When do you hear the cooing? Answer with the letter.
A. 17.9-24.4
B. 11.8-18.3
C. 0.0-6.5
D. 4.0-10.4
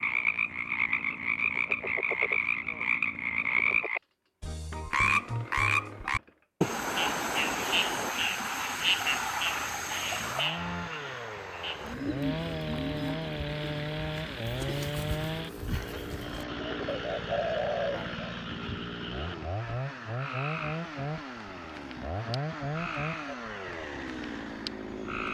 B.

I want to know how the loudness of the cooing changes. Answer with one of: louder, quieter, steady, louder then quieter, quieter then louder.
quieter then louder.